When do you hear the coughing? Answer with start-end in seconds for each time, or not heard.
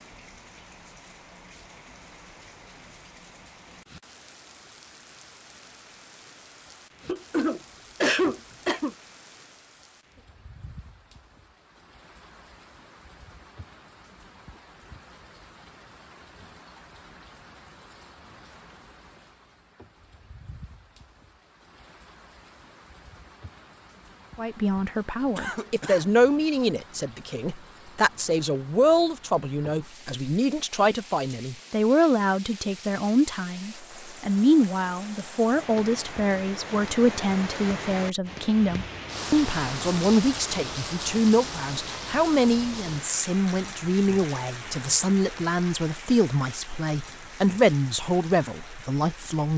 7.0-8.9, 25.4-26.1.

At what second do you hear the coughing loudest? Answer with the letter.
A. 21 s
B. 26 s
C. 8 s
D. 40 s
C.